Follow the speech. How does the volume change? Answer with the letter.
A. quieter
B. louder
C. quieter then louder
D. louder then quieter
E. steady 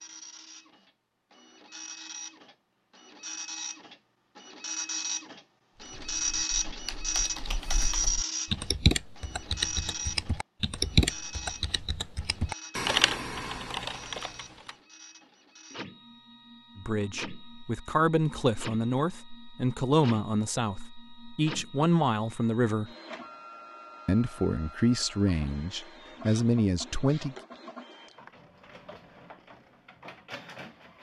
E.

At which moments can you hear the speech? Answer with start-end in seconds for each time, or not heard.
16.8-22.9, 24.1-27.4.